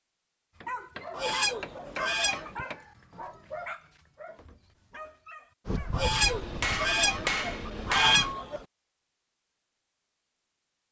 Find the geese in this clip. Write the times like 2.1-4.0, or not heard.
1.1-2.5, 5.9-8.7.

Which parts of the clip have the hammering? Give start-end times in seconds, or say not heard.
0.6-2.9, 6.2-8.3.